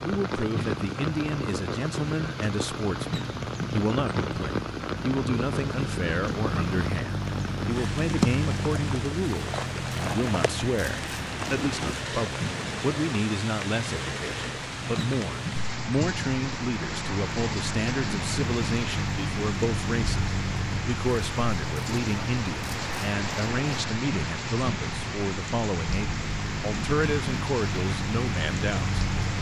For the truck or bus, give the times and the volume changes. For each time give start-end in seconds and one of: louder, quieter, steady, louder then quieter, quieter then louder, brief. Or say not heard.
0.1-29.3 steady.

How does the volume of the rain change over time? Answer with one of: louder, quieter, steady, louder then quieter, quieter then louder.
steady.